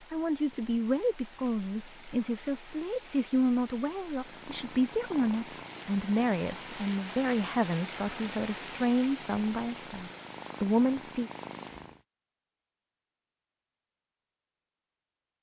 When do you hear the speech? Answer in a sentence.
The speech can be heard from 0.1 to 11.3 s.